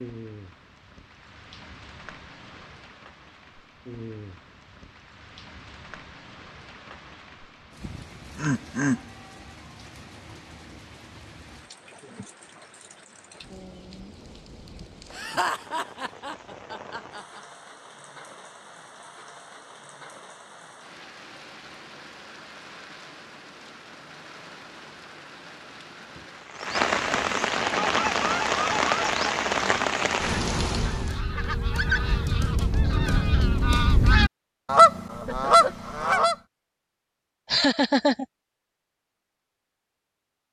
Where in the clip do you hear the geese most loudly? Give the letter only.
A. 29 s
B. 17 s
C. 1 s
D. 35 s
D.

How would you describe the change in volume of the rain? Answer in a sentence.
The volume of the rain goes up.